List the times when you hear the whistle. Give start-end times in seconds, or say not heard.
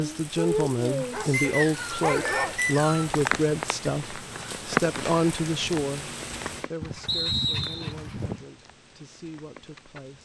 1.3-3.1, 7.0-8.0.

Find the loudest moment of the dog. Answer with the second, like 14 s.
2 s.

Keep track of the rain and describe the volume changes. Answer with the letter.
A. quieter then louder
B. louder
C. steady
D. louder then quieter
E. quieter
E.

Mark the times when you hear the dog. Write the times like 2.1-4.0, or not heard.
1.1-2.6, 6.8-8.4.